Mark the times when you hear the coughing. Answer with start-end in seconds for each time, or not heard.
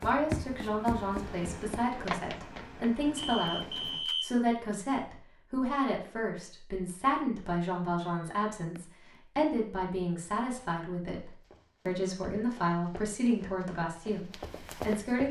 not heard.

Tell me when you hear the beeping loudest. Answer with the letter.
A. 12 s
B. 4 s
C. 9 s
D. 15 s
B.